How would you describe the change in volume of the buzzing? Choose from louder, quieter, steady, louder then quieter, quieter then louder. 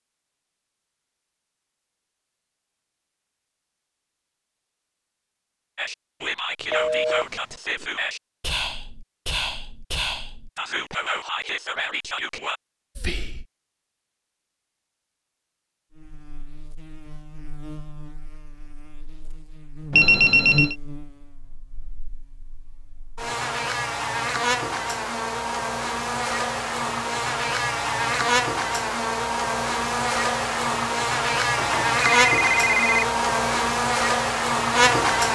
louder.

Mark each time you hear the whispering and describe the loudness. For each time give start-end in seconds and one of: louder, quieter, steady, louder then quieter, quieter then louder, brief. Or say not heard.
5.8-13.4 steady.